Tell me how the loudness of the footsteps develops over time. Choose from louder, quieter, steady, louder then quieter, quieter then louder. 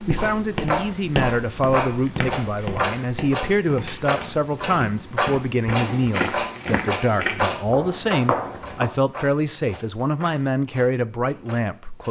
quieter then louder.